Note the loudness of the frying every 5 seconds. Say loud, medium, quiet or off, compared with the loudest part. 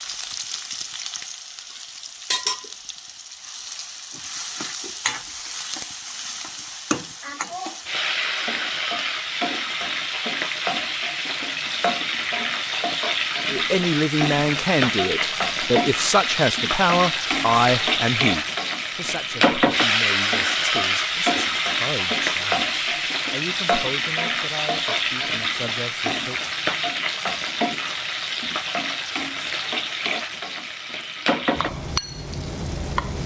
medium, medium, loud, loud, loud, loud, medium.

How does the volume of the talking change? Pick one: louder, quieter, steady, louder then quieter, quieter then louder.
quieter.